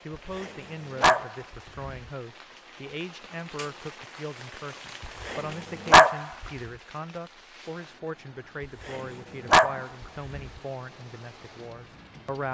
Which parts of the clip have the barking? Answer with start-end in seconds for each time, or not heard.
0.3-1.8, 5.2-6.5, 8.8-10.5.